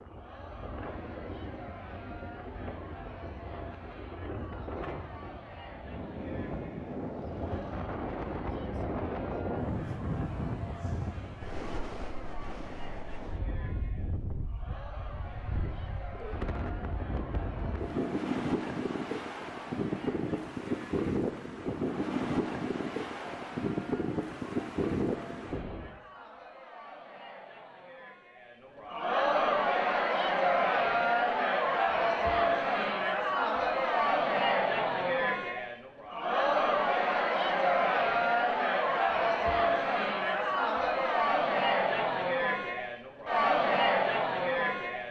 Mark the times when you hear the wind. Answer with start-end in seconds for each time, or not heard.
0.0-26.0.